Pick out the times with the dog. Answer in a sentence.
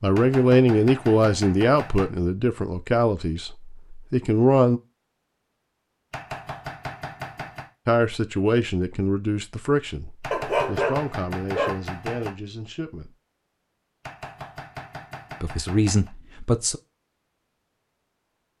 The dog can be heard from 10.3 to 11.8 s.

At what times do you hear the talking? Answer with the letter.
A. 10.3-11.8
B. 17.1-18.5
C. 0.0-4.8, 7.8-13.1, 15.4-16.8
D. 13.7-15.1
C.